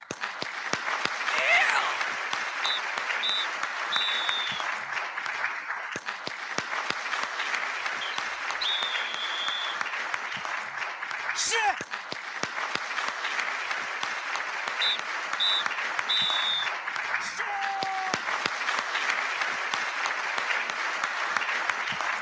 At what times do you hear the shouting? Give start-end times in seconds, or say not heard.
1.3-2.0, 11.3-11.8, 17.2-18.4.